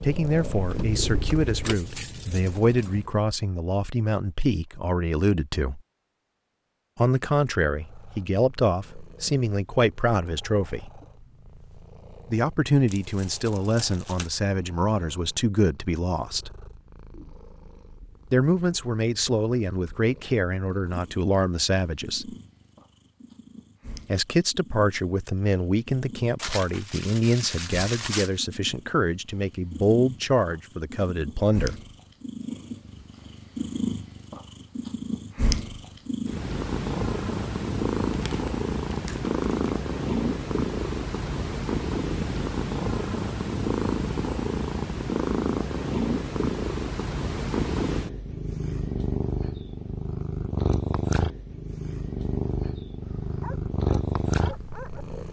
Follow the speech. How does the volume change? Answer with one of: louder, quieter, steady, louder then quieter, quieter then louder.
steady.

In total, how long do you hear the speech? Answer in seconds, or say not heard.
26 s.